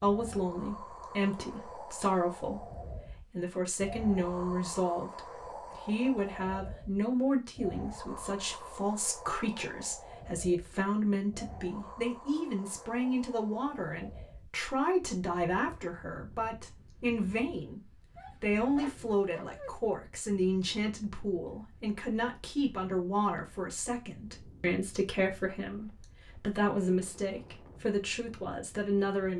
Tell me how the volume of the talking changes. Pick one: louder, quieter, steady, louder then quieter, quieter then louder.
steady.